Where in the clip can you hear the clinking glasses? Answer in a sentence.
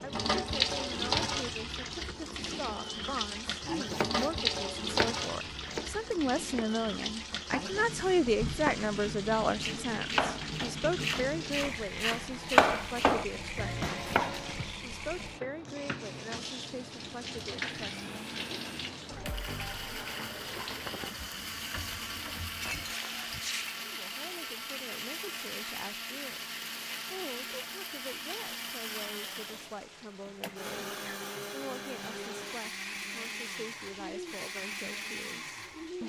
The clinking glasses can be heard from 22.5 to 23.8 s.